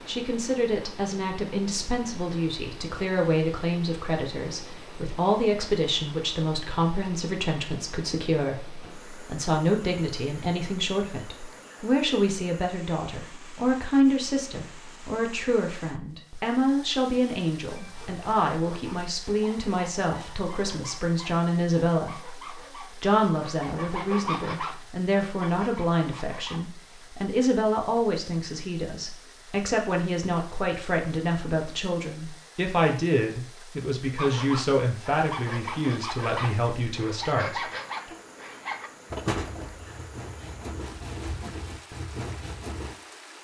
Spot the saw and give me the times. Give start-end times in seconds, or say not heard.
17.8-26.6, 34.1-43.0.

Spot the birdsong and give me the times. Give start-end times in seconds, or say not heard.
not heard.